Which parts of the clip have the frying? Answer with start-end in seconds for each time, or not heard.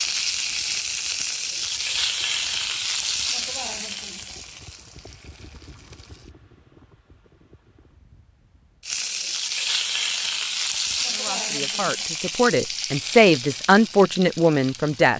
0.0-6.3, 8.8-15.1.